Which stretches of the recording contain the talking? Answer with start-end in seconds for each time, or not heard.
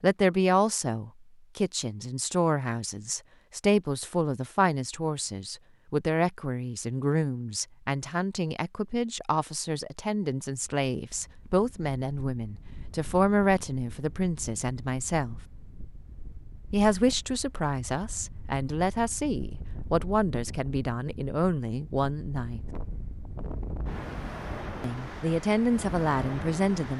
0.0-15.4, 16.7-22.6, 24.8-26.9.